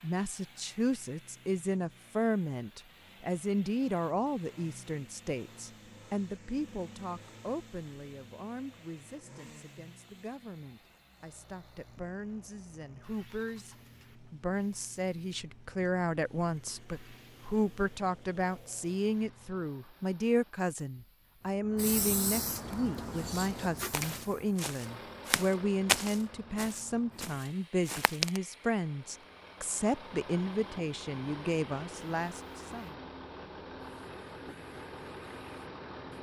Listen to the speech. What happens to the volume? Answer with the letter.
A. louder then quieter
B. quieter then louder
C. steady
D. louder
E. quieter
B.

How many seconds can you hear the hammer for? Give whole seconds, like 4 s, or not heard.
not heard.